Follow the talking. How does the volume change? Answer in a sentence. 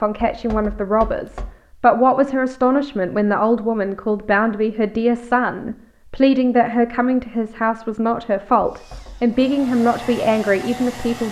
The volume of the talking stays about the same.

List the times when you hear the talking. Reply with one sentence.
You can hear the talking from 0.0 to 11.2 s.